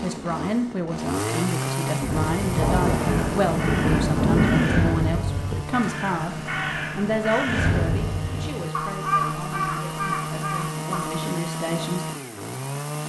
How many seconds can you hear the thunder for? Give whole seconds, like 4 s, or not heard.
3 s.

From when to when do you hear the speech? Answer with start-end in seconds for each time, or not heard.
0.0-6.3, 7.0-12.1.